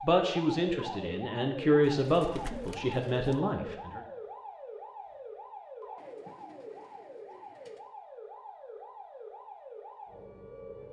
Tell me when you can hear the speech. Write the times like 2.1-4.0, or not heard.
0.0-4.0.